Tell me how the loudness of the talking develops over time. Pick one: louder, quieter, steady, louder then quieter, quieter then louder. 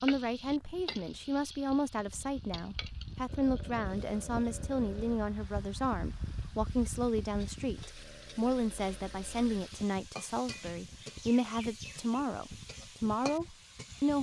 steady.